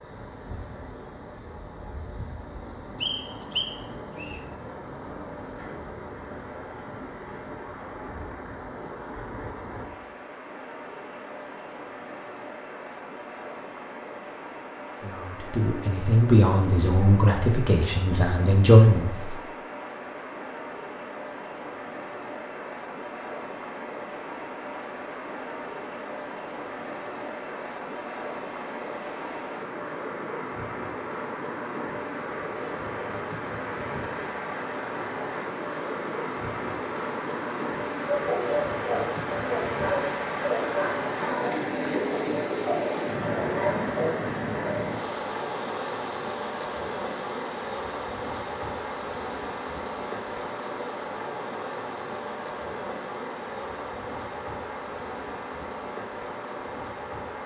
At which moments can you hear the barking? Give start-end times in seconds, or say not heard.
38.0-44.9.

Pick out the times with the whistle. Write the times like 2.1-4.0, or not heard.
3.0-4.4.